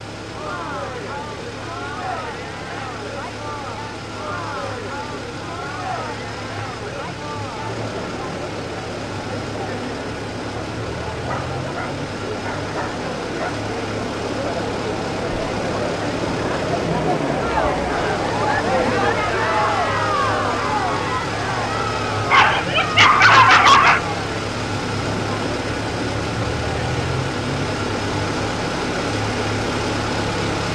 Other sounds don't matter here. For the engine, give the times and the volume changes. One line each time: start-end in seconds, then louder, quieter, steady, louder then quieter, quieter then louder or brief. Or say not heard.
0.0-30.7 louder.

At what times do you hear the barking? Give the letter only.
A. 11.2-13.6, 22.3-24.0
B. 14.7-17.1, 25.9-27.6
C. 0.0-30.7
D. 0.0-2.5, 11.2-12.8
A.